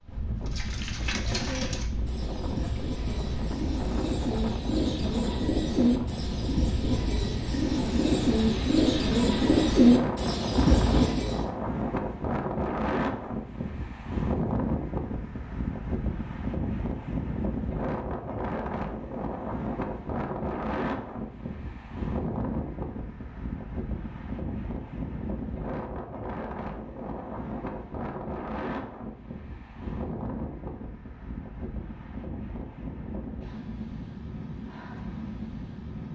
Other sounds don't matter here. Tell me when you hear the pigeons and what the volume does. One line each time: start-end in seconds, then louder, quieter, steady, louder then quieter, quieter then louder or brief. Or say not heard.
0.5-11.4 louder.